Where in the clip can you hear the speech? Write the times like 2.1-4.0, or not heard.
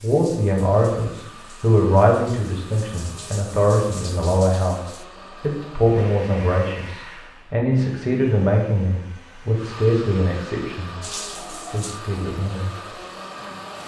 0.0-12.9.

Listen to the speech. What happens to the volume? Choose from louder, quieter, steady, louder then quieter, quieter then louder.
quieter.